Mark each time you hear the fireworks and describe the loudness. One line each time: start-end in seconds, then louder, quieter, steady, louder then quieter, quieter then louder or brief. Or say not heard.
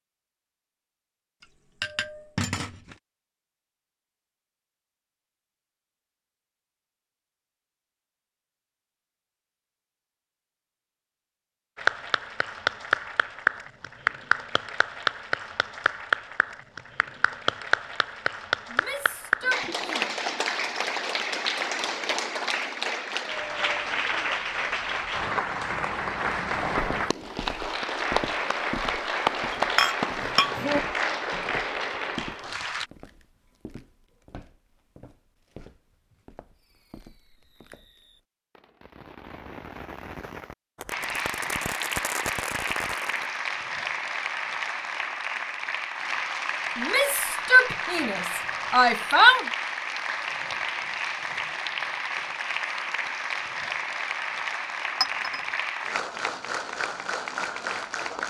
36.5-43.4 louder.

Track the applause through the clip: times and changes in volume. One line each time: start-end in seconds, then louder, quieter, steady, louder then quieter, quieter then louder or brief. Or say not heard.
11.8-32.9 steady
40.9-58.2 steady.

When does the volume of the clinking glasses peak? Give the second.
30 s.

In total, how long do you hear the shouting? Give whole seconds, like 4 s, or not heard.
4 s.